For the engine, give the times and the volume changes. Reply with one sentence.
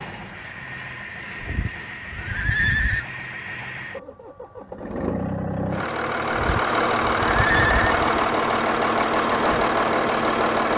You can hear the engine from 0.0 to 10.7 s, getting louder.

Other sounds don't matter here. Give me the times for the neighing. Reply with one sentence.
The neighing can be heard from 1.4 to 3.0 s and from 6.3 to 8.2 s.